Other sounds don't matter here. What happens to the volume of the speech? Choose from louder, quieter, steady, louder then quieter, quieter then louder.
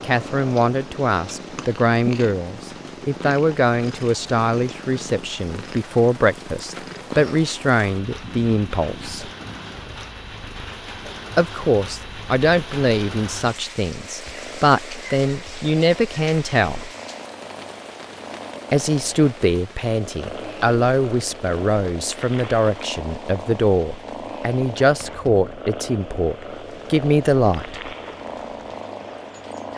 steady.